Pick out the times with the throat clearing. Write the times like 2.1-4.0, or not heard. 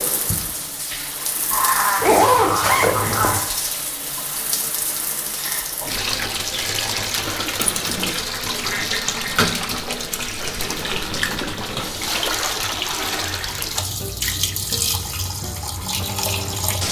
1.5-3.4, 8.5-9.7.